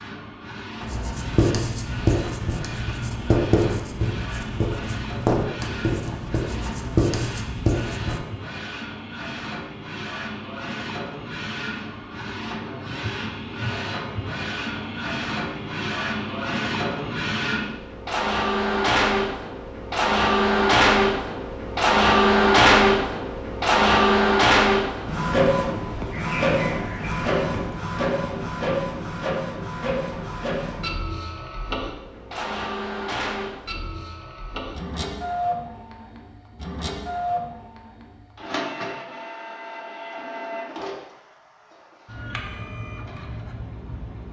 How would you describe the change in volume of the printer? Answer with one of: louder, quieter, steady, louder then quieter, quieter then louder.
louder then quieter.